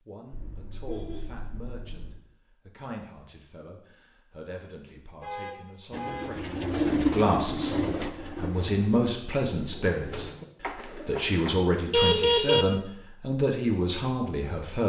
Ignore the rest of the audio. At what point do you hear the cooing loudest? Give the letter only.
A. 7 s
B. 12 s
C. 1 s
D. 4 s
A.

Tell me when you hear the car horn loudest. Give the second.
12 s.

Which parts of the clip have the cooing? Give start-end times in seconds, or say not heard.
5.9-11.3.